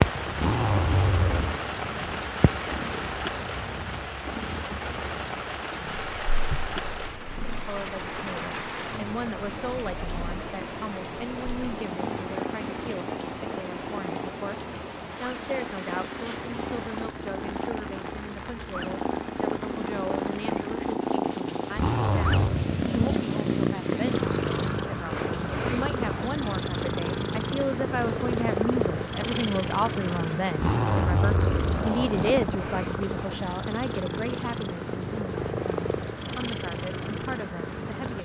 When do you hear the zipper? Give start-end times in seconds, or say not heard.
0.3-1.6, 21.7-22.6, 30.6-32.6.